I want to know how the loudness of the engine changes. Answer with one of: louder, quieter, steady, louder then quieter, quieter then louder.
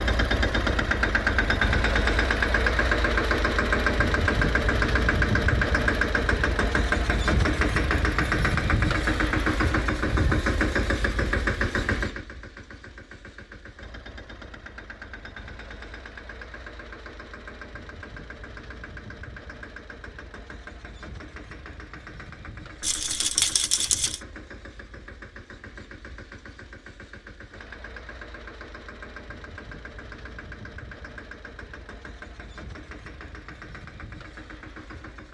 quieter.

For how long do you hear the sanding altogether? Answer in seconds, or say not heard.
not heard.